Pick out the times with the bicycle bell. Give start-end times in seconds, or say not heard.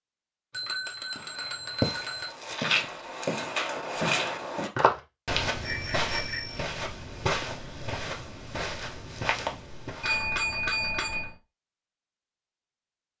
0.5-2.3, 5.6-6.7, 10.0-11.3.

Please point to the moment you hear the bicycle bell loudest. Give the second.
10 s.